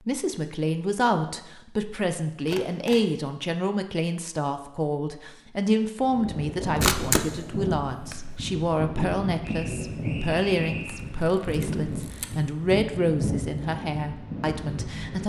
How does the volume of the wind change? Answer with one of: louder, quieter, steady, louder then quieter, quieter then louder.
steady.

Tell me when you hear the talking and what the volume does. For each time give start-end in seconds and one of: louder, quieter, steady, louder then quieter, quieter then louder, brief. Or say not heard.
0.1-15.2 steady.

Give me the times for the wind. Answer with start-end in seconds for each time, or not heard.
6.0-15.2.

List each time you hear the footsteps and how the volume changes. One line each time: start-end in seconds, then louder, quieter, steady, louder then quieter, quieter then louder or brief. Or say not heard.
not heard.